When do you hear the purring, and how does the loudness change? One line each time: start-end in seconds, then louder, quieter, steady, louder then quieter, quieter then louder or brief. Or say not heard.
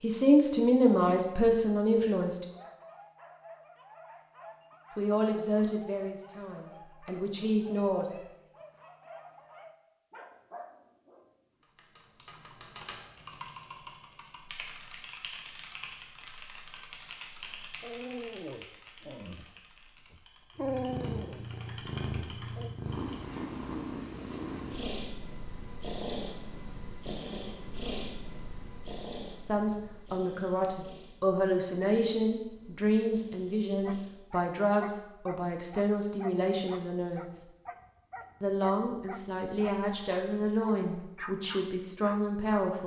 20.6-34.2 quieter.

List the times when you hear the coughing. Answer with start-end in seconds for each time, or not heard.
not heard.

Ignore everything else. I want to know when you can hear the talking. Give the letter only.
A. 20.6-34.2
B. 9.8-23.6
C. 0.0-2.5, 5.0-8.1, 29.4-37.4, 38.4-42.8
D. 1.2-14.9
C.